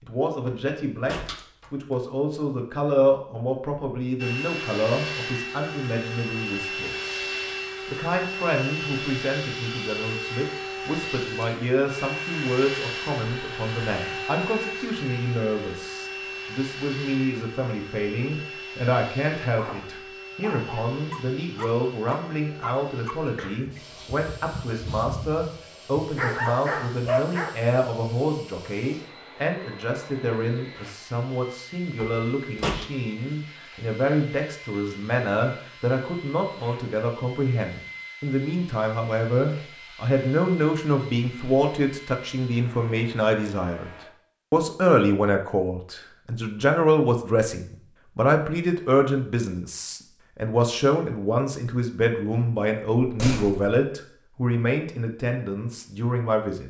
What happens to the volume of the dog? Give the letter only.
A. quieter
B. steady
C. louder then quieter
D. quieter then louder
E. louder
E.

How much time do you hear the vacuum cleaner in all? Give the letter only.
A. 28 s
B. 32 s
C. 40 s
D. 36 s
C.